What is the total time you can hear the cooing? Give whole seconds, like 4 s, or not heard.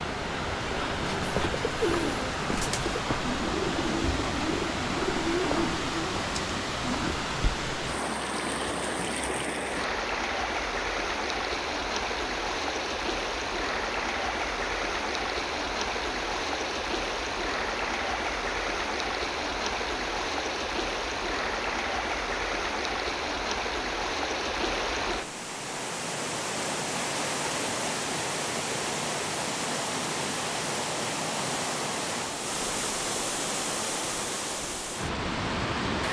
6 s.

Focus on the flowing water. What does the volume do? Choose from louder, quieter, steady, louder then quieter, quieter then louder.
steady.